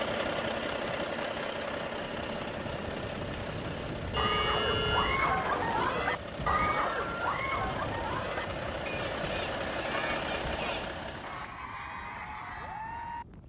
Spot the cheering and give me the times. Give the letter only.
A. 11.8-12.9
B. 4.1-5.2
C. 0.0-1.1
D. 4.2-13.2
D.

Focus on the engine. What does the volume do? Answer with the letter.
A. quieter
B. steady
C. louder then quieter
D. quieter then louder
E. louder
D.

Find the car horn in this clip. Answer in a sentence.
You can hear the car horn from 4.1 to 5.2 s.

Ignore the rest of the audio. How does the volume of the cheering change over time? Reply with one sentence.
The loudness of the cheering goes down.